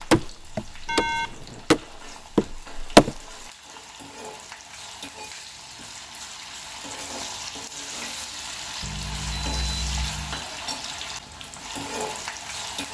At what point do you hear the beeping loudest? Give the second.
1 s.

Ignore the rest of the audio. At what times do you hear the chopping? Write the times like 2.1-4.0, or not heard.
0.0-3.5.